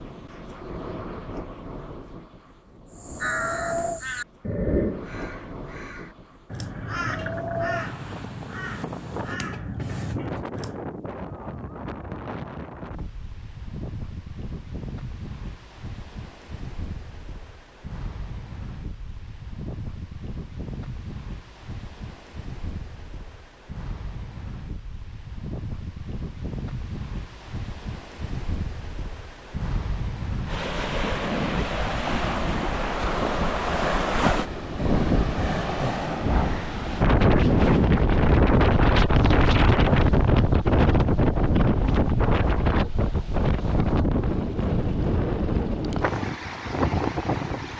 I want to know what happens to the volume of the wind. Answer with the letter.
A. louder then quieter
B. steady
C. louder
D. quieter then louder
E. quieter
C.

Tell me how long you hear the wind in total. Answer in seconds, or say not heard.
48 s.